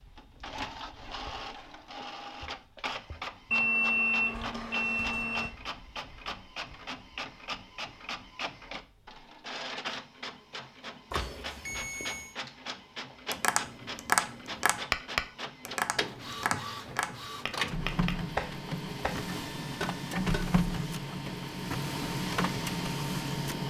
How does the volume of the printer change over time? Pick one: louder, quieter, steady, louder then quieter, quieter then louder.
louder.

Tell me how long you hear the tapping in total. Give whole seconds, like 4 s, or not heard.
7 s.